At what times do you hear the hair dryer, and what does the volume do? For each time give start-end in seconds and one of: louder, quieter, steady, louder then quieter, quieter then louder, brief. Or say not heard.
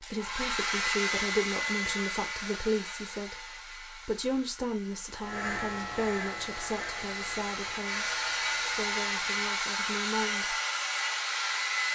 0.0-11.9 quieter then louder.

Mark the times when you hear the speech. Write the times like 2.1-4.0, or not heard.
0.0-10.6.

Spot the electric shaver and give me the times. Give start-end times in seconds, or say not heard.
5.2-9.6.